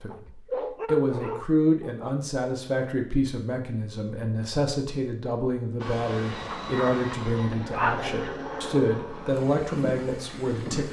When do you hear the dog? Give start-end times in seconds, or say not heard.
0.1-2.1, 6.5-8.0.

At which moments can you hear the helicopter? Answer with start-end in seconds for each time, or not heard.
5.8-10.8.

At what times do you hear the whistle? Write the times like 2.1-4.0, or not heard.
not heard.